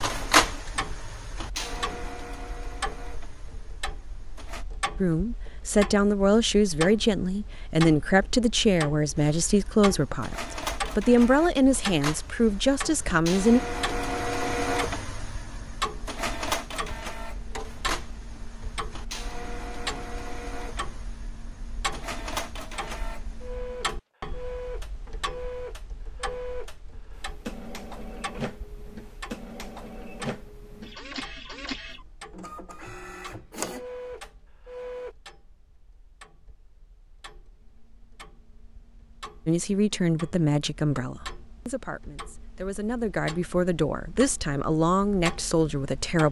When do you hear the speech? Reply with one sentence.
You can hear the speech from 5.0 to 13.6 s and from 39.5 to 46.2 s.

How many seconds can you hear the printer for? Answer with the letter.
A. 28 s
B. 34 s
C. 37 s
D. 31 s
D.